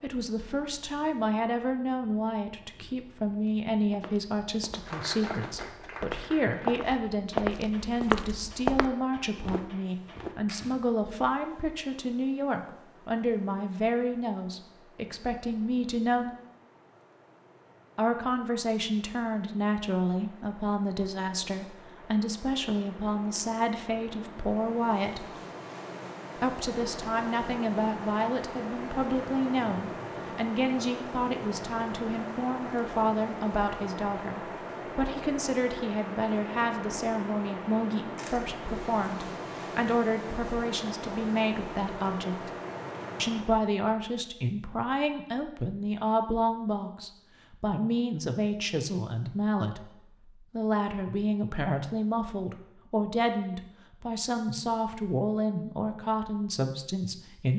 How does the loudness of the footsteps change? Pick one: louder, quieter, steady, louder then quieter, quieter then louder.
louder then quieter.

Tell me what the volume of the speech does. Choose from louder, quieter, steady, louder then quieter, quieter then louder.
steady.